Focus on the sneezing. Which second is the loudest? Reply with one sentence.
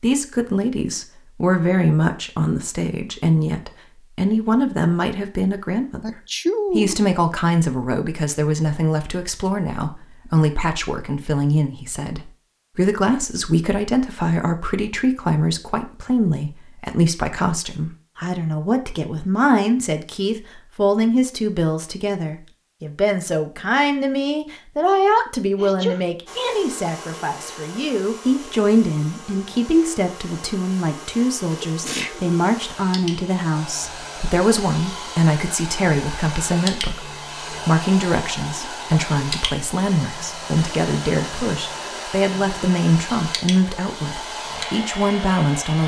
The loudest moment of the sneezing is at 7 seconds.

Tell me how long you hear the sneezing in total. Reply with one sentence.
You can hear the sneezing for 2 seconds altogether.